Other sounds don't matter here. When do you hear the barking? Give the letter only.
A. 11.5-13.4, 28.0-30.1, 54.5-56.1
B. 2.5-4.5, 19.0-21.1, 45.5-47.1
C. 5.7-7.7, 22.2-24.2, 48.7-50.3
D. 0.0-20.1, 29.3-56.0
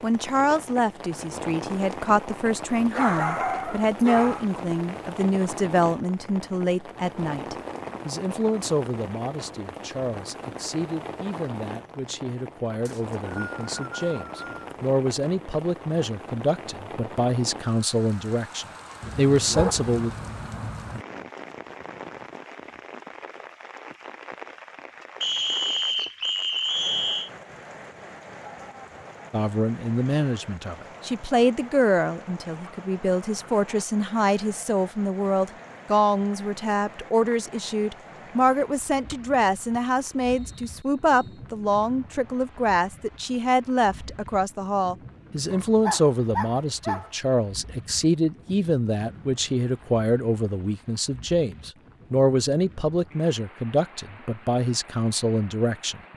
B.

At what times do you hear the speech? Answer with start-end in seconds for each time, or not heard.
0.0-20.1, 29.3-56.0.